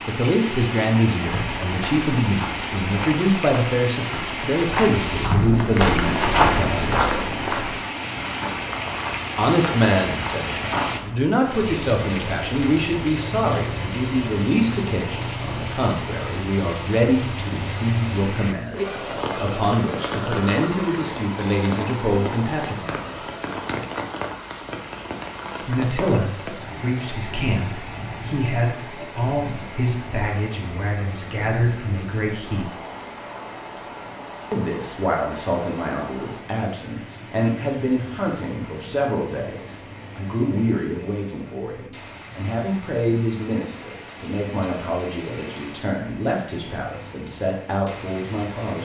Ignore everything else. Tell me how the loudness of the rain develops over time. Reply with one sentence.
The loudness of the rain goes down.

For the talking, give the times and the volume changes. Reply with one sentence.
You can hear the talking from 0.1 to 7.2 s, at a steady volume; from 9.3 to 23.2 s, at a steady volume; from 25.6 to 32.8 s, at a steady volume; and from 34.5 to 48.7 s, at a steady volume.